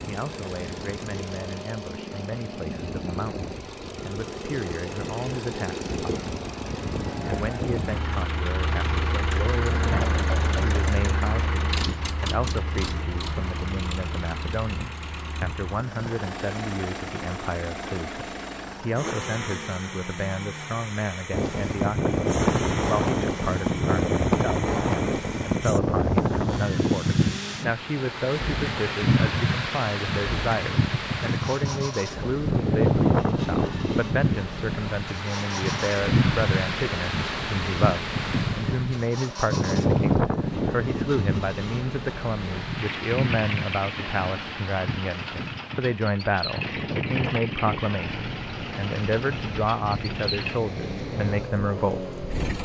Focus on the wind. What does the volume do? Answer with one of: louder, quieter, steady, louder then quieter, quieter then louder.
quieter.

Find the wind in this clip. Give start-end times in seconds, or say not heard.
21.3-52.6.